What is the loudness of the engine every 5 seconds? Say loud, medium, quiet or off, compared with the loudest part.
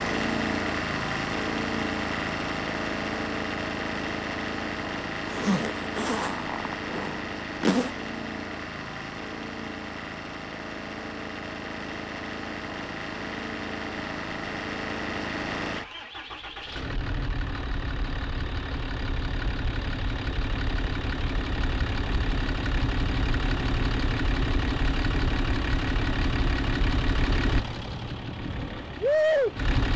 loud, medium, medium, medium, loud, loud.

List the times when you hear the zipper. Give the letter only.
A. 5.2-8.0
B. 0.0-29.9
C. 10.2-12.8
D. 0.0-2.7
A.